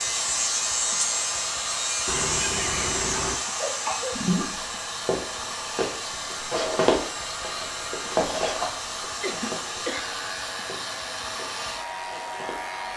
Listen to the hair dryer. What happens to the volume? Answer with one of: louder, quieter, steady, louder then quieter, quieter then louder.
steady.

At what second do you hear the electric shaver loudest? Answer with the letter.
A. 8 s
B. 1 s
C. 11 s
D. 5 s
B.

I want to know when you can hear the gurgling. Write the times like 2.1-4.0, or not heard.
4.2-4.7.